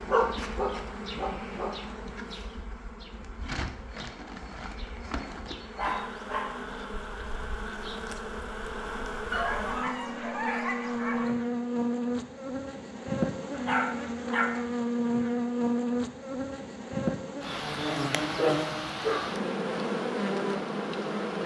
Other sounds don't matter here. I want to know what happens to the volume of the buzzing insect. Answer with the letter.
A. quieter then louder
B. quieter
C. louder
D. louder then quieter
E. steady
C.